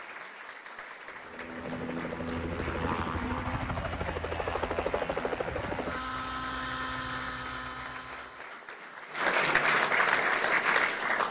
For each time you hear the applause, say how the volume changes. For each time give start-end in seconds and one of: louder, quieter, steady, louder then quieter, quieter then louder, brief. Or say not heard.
0.0-11.2 louder.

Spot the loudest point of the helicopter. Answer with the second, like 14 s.
5 s.